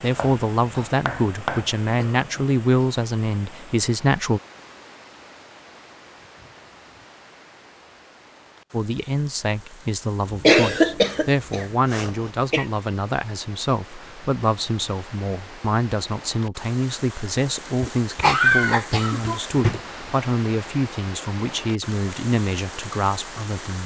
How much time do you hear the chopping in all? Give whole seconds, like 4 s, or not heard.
2 s.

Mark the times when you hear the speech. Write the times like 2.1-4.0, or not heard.
0.0-4.4, 8.7-23.8.